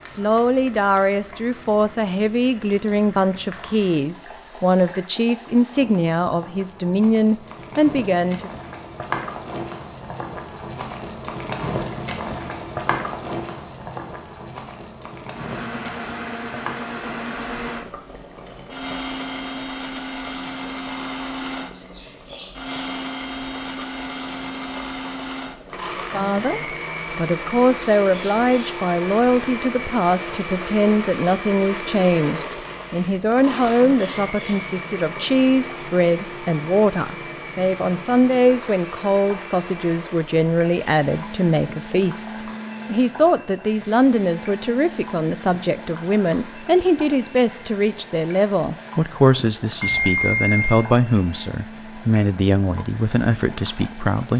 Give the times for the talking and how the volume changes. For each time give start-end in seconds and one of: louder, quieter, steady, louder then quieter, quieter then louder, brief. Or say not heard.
0.1-8.5 steady
25.9-54.3 steady.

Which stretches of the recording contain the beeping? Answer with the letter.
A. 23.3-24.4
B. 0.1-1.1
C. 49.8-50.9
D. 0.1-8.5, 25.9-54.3
C.